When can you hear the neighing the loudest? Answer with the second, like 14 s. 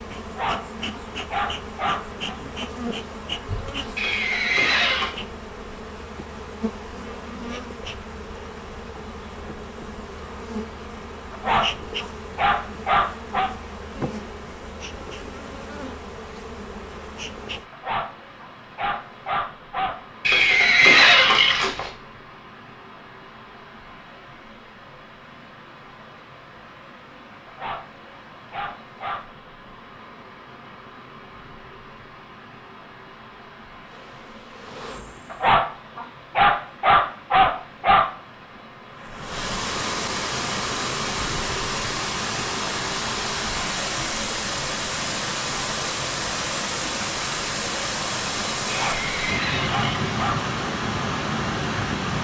21 s.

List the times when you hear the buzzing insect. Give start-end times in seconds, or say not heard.
0.0-17.6, 33.9-35.6.